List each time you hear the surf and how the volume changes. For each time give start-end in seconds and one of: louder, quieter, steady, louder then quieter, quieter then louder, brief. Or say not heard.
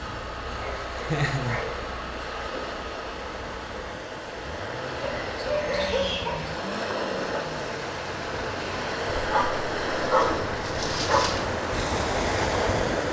0.0-13.0 louder.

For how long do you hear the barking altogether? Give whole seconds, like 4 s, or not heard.
5 s.